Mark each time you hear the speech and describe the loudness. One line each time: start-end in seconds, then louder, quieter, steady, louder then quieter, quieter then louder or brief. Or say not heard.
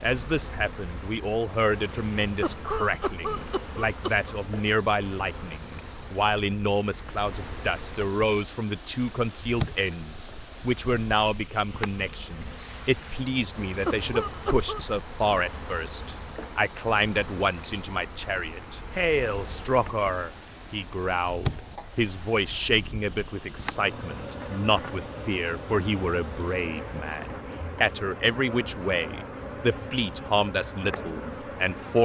0.0-32.0 steady.